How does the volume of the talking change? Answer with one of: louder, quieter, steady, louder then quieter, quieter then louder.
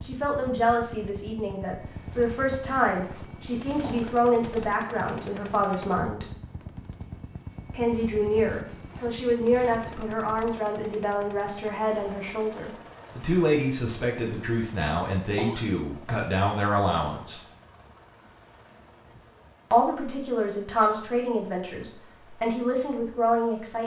steady.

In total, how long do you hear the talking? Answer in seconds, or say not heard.
20 s.